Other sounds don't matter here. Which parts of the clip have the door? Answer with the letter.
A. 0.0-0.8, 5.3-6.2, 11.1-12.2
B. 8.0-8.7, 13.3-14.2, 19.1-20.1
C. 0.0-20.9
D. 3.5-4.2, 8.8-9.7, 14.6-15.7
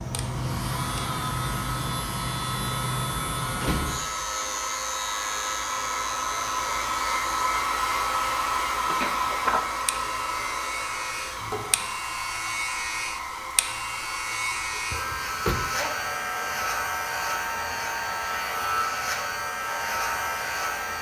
D.